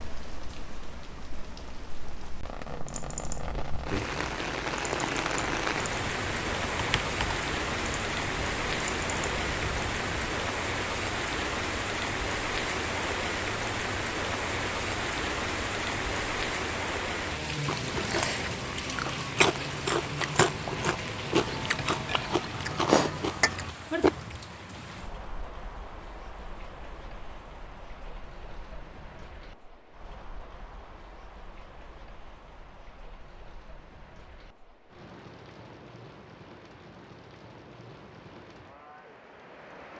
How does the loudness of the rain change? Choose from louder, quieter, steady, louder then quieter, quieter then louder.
quieter.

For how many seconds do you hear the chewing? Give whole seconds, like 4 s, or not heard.
7 s.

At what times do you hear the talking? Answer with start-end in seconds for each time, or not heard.
not heard.